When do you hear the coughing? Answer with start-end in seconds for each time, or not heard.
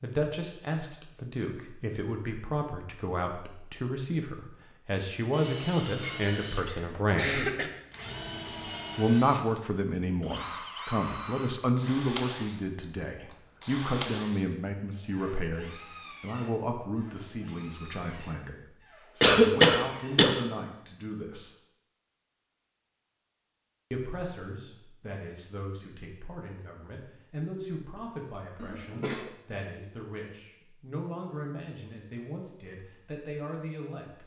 6.0-7.7, 19.2-20.4, 28.6-29.3.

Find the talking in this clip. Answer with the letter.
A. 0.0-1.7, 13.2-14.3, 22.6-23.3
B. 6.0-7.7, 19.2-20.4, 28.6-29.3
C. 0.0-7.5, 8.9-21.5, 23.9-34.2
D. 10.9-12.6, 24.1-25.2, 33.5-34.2
C.